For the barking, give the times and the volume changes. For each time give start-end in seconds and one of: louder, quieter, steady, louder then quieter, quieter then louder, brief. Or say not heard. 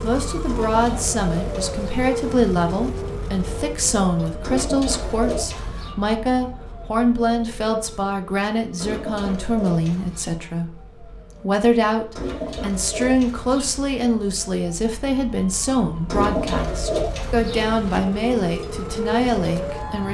not heard.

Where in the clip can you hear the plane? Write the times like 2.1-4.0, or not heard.
not heard.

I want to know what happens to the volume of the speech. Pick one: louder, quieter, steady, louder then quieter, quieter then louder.
steady.